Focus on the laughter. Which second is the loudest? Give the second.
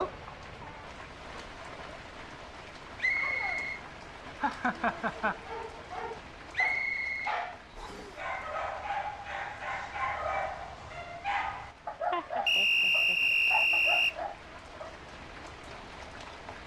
5 s.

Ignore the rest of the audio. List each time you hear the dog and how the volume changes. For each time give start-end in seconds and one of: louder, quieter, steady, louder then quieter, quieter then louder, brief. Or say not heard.
5.2-14.9 steady.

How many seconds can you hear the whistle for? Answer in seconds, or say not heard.
4 s.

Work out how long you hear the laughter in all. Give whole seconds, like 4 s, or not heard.
2 s.